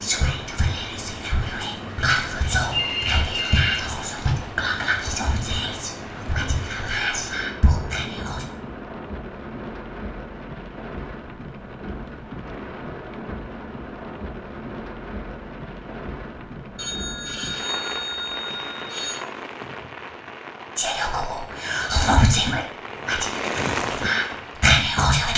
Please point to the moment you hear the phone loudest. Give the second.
3 s.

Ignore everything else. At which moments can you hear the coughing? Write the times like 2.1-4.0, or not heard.
not heard.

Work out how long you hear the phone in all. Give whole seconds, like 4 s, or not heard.
4 s.